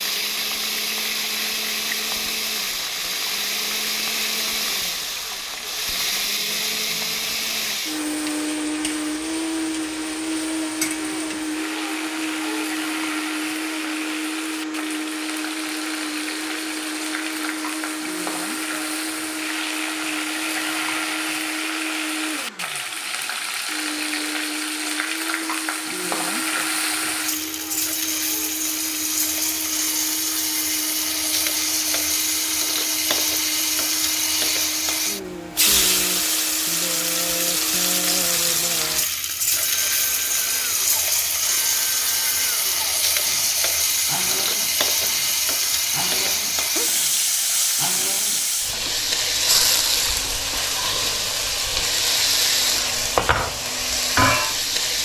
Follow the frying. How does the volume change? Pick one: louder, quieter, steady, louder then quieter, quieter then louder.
louder.